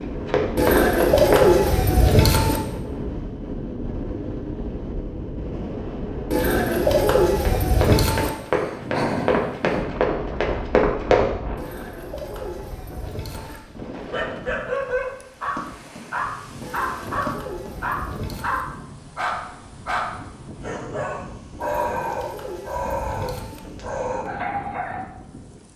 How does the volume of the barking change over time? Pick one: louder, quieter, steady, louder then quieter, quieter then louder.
steady.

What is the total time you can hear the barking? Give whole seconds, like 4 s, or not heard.
12 s.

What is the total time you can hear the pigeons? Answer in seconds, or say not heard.
10 s.